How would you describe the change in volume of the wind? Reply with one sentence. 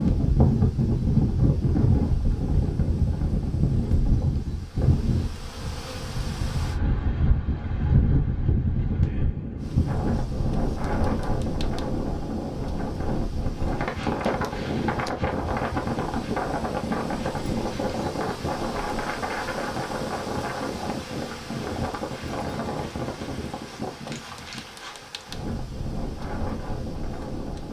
The loudness of the wind goes down.